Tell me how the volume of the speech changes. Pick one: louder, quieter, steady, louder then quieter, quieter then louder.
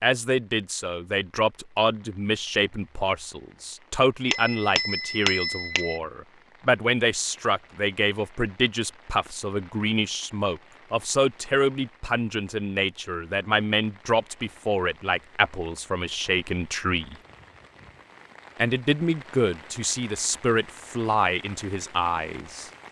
steady.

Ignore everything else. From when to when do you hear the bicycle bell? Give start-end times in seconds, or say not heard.
4.2-6.0.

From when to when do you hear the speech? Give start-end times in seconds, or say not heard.
0.0-17.1, 18.6-22.7.